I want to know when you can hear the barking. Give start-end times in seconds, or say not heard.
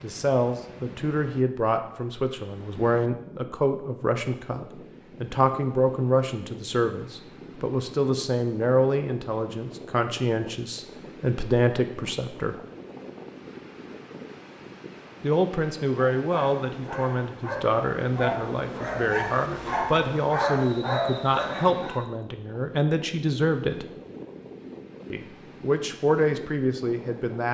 16.1-22.1.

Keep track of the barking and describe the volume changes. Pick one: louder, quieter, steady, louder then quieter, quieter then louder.
louder.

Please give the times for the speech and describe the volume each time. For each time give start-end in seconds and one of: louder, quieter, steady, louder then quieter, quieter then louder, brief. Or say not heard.
0.0-12.6 steady
15.2-23.9 steady
25.1-27.4 brief.